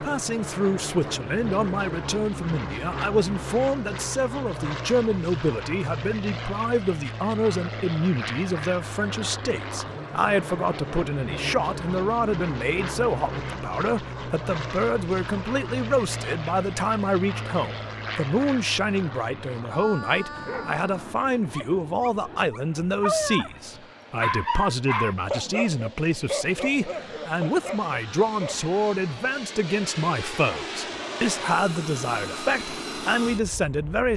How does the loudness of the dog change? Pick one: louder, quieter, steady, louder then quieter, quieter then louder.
louder then quieter.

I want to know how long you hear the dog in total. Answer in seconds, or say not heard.
8 s.